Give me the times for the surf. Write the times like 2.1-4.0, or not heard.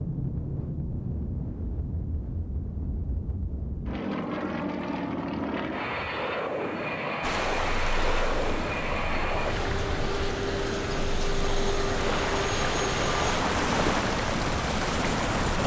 7.2-15.6.